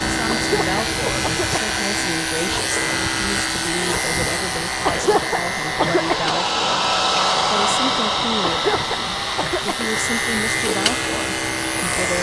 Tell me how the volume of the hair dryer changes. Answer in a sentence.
The loudness of the hair dryer goes up, then down.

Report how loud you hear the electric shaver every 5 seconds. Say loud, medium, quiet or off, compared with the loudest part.
loud, medium, loud.